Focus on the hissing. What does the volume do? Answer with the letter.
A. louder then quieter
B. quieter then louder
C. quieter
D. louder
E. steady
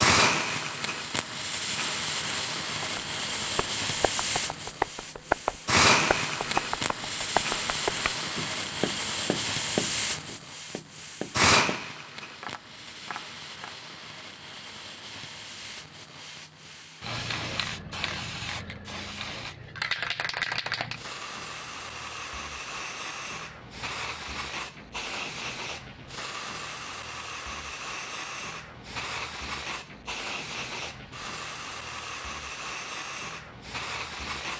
C.